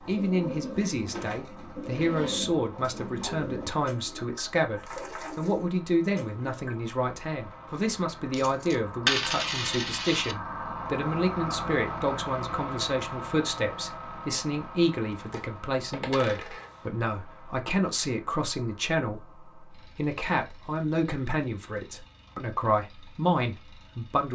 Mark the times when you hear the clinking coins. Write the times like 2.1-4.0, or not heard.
8.3-10.3, 15.3-16.8.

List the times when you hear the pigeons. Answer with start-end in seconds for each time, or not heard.
0.0-6.8.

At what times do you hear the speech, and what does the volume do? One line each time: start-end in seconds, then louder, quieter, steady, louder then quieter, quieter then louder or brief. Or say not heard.
0.0-24.3 steady.